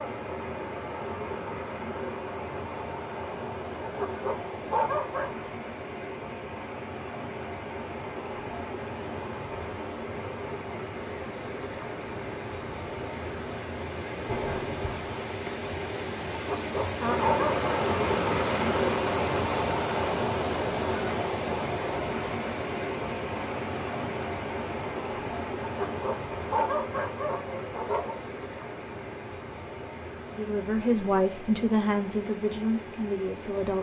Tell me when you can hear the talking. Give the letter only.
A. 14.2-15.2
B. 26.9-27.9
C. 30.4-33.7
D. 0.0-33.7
C.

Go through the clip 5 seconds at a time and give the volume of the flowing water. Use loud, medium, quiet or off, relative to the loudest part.
medium, medium, medium, loud, loud, medium, quiet.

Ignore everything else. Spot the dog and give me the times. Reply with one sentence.
The dog can be heard from 3.8 to 5.5 s, from 16.3 to 17.6 s and from 25.6 to 28.2 s.